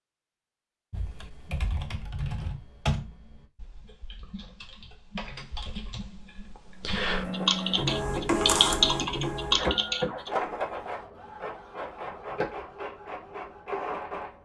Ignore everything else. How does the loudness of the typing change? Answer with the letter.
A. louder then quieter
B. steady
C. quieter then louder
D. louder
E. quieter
C.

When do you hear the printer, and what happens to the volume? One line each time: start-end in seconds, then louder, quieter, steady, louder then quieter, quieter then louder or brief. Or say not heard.
6.6-14.3 quieter.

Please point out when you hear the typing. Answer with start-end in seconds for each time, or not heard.
0.9-10.3.